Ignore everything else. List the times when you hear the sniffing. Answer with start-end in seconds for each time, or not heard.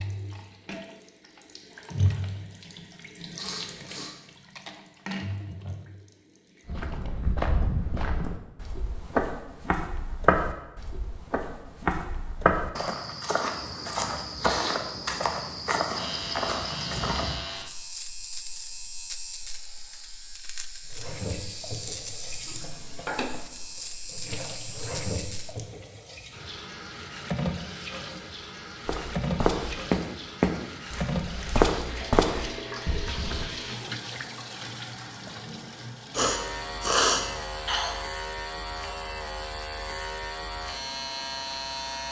2.9-4.2, 14.3-14.8, 36.1-38.0.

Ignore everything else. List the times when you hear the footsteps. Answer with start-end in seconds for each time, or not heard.
6.7-17.4, 28.9-33.5.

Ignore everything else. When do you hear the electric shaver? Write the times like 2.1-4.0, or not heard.
15.9-25.6, 36.1-42.0.